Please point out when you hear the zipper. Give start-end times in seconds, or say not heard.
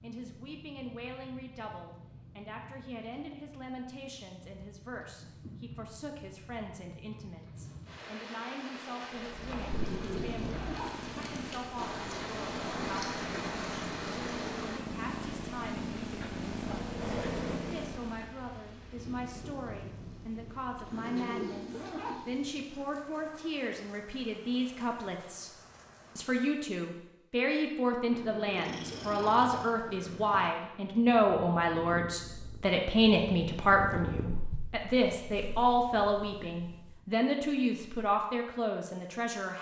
9.7-11.0, 20.6-22.6, 27.9-29.4.